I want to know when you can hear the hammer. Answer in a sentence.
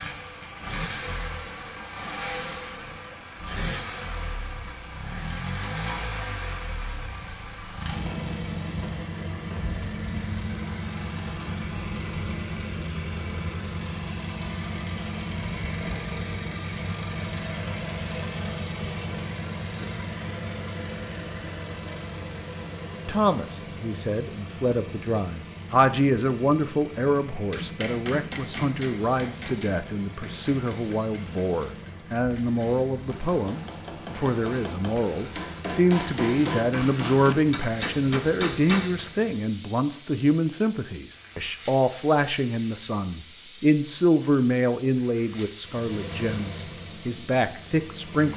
The hammer can be heard from 27.3 to 39.0 s.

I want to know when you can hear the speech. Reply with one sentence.
You can hear the speech from 23.1 to 48.3 s.